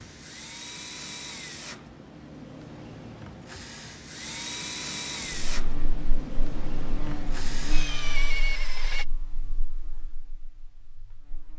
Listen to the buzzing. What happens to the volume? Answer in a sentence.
The loudness of the buzzing goes up, then down.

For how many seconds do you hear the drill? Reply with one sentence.
You can hear the drill for 9 seconds altogether.